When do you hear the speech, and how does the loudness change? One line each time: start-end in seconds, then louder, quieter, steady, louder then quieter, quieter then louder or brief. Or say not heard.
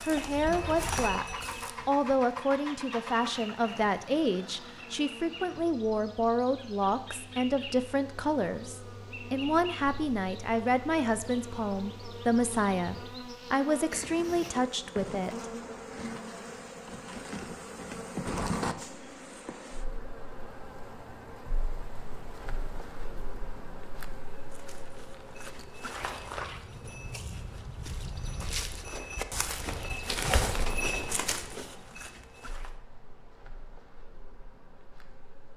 0.1-15.4 steady.